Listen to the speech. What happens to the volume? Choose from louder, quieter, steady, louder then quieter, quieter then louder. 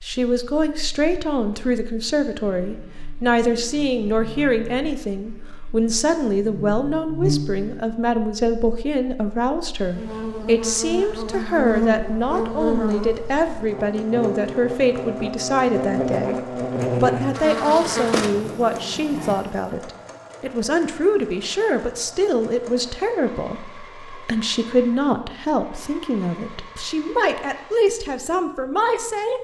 steady.